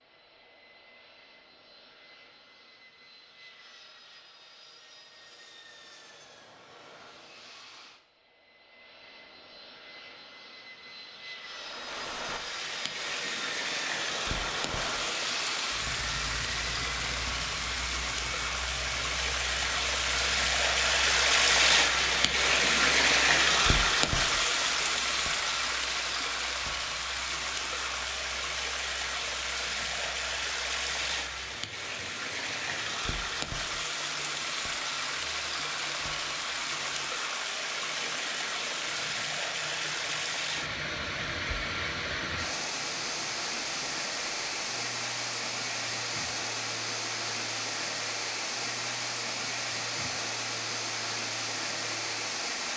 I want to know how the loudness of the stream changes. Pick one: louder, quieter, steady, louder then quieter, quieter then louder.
louder then quieter.